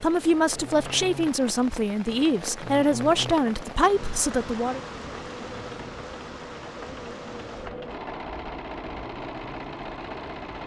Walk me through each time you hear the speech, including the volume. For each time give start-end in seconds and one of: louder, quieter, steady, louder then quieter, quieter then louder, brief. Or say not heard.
0.0-4.8 steady.